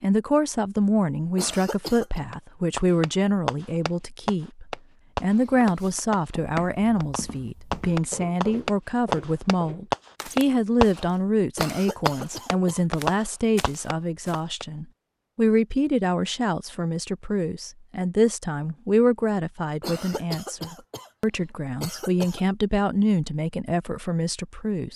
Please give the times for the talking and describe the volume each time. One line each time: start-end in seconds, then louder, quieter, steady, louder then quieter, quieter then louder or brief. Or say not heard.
0.0-24.9 steady.